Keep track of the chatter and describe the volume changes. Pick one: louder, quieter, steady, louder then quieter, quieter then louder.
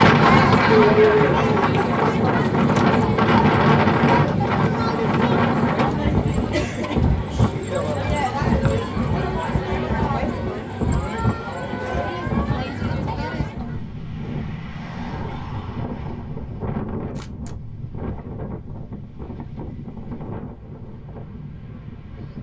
quieter.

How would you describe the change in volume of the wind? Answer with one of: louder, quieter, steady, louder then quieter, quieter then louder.
quieter.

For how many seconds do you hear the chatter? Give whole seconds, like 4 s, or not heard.
14 s.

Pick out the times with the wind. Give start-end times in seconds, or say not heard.
0.0-22.3.